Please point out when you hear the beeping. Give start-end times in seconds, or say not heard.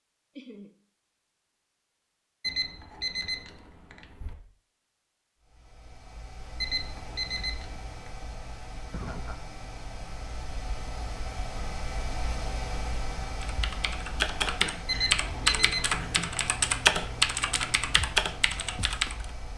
2.4-4.3, 6.6-8.1, 14.8-15.9.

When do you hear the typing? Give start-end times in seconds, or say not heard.
13.4-19.3.